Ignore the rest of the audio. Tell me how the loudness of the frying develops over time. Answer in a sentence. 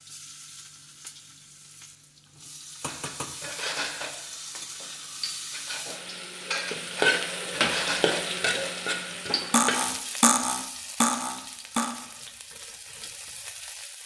The volume of the frying goes up, then down.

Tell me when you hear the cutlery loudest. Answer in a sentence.
The volume of the cutlery peaks at 10 seconds.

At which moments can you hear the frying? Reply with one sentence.
You can hear the frying from 0.0 to 14.0 s.